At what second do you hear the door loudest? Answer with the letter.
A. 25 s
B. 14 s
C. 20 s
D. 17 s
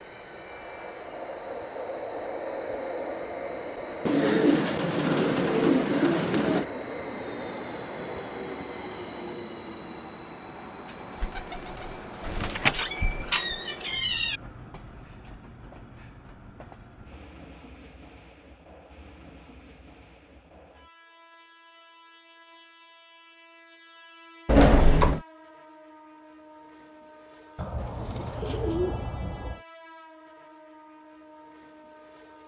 A.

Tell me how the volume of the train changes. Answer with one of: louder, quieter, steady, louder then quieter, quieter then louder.
quieter.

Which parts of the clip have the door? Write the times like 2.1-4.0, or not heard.
12.6-14.4, 24.4-25.2.